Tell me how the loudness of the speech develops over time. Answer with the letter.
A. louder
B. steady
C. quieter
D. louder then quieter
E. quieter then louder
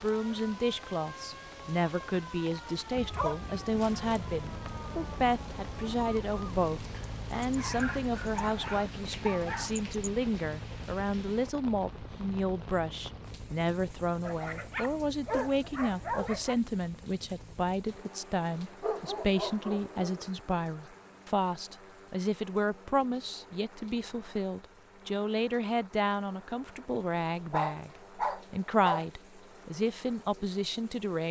B.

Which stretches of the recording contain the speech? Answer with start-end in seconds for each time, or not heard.
0.0-31.2.